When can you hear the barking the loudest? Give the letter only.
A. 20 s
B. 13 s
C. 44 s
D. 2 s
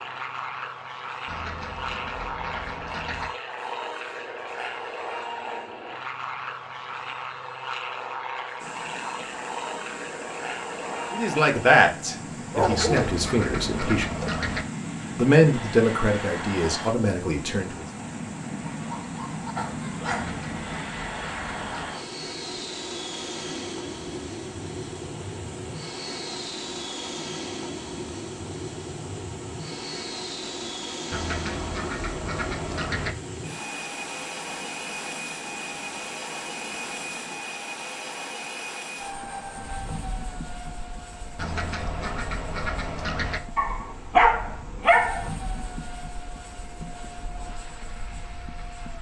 C.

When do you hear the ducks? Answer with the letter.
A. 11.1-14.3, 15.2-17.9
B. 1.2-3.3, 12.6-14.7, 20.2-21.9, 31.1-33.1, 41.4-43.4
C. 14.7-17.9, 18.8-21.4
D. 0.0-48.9
B.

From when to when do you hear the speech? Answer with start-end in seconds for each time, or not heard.
11.1-14.3, 15.2-17.9.